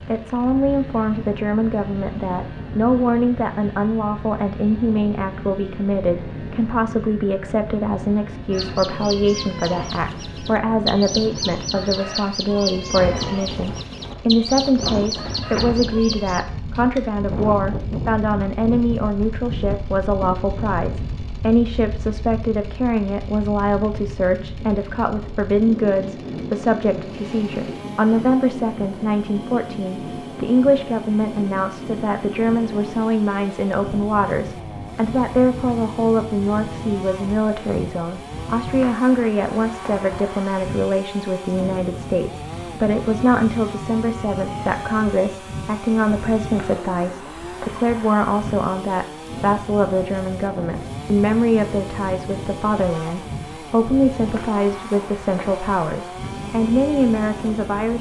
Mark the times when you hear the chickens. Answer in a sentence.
You can hear the chickens from 8.5 to 16.4 s.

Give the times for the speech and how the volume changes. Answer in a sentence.
You can hear the speech from 0.1 to 57.9 s, at a steady volume.